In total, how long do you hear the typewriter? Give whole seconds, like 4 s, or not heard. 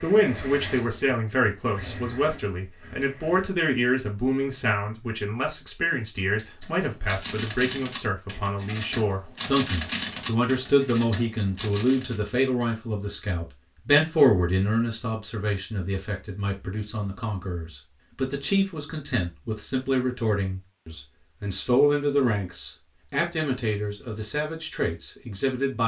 6 s.